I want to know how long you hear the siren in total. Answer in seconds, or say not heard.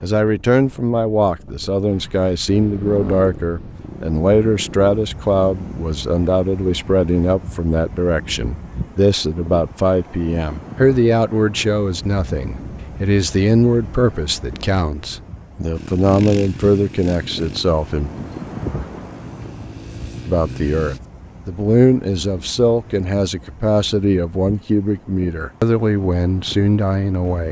not heard.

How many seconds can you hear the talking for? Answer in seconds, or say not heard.
25 s.